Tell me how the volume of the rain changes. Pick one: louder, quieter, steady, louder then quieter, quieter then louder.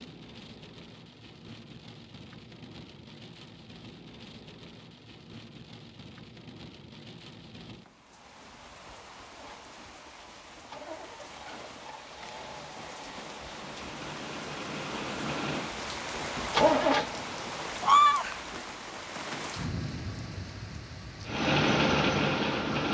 louder.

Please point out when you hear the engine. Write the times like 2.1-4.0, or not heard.
9.3-17.6, 21.2-22.8.